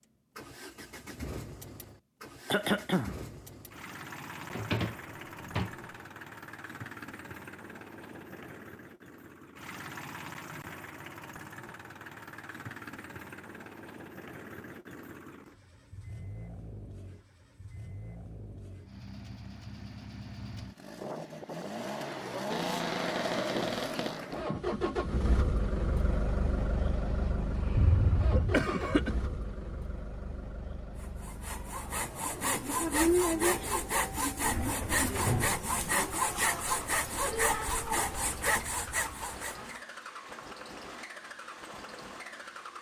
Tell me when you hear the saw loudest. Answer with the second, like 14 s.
33 s.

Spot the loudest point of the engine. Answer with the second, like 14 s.
25 s.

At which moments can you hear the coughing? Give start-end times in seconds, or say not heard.
2.5-3.1, 27.8-29.1.